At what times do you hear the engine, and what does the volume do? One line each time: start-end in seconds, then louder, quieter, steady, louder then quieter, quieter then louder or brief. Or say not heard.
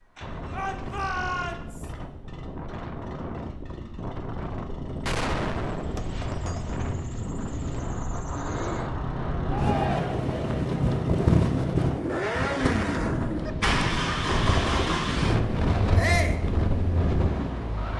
0.0-17.9 louder.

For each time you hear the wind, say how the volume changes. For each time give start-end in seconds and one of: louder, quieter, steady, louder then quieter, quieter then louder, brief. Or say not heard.
0.2-17.9 louder.